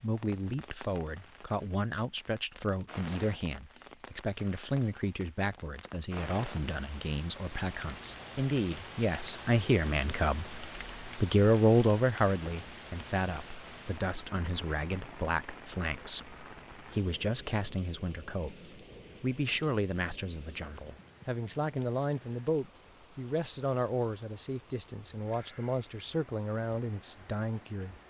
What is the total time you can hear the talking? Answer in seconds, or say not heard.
28 s.